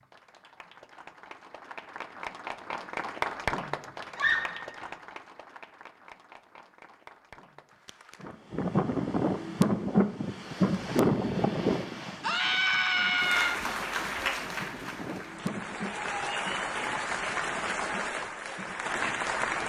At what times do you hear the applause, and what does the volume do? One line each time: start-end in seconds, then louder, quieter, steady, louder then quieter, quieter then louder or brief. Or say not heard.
0.0-8.3 louder then quieter
13.2-19.6 quieter then louder.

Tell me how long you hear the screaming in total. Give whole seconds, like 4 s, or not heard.
2 s.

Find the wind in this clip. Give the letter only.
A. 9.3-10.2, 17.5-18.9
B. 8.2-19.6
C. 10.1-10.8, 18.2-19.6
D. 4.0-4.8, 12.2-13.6
B.